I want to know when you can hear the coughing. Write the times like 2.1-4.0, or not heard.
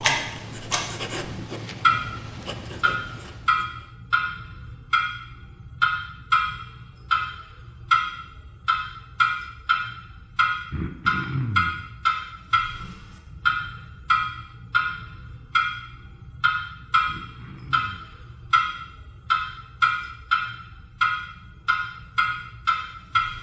1.2-2.0, 10.7-11.8, 17.1-18.2.